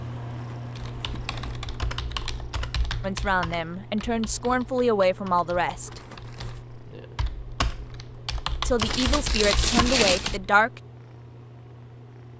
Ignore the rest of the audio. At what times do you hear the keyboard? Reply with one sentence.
You can hear the keyboard from 0.8 to 10.5 s.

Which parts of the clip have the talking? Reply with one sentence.
The talking can be heard from 3.0 to 6.0 s and from 8.7 to 10.8 s.